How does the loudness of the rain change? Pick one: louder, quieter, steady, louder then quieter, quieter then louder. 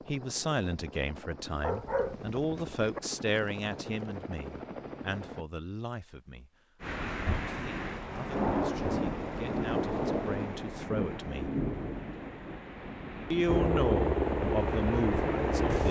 quieter.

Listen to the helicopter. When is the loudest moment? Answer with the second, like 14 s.
14 s.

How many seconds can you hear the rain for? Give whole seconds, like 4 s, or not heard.
9 s.